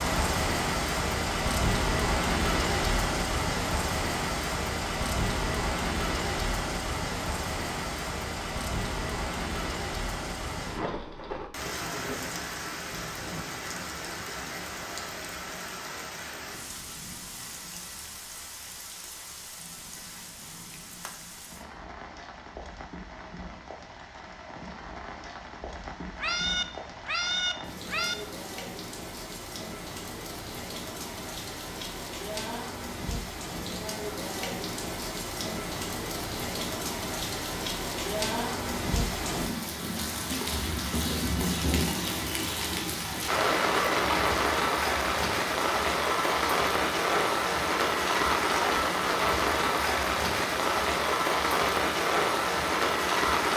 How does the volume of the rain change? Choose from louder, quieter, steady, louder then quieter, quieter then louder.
quieter then louder.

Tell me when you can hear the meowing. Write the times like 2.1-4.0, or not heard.
26.1-28.1.